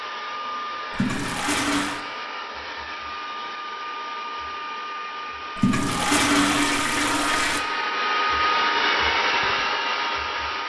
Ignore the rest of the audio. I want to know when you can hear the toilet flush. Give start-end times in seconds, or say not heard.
0.9-2.0, 5.5-7.7.